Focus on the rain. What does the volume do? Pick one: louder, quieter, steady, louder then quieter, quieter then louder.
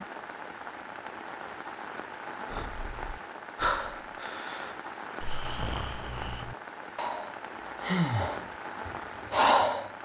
steady.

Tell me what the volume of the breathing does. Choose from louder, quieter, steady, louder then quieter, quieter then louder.
quieter then louder.